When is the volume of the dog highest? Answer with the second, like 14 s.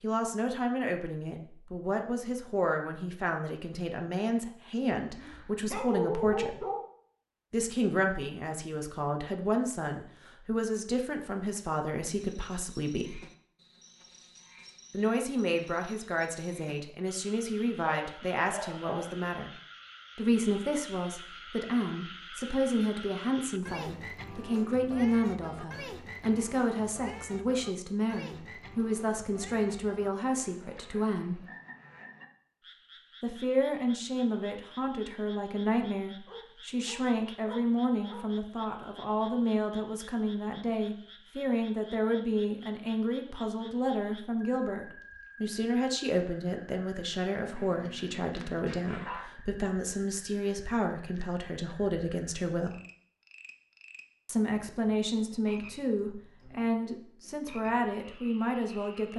6 s.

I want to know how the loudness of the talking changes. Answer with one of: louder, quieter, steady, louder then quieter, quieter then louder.
steady.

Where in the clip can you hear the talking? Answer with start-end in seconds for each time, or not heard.
0.0-6.7, 7.5-13.2, 14.9-19.5, 20.1-31.4, 33.2-52.8, 54.2-59.1.